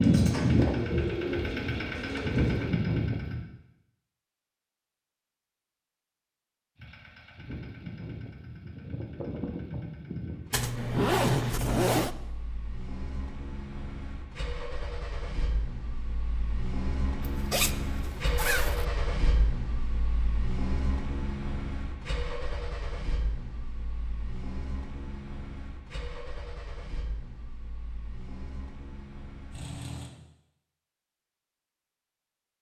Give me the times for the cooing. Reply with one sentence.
You can hear the cooing from 0.0 to 2.8 s.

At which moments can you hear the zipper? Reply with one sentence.
You can hear the zipper from 10.5 to 12.1 s and from 17.2 to 18.9 s.